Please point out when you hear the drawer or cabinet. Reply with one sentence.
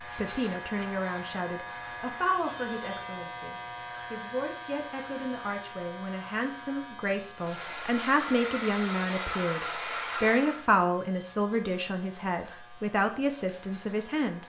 You can't hear the drawer or cabinet here.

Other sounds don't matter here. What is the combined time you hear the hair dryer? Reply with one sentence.
You can hear the hair dryer for 3 seconds altogether.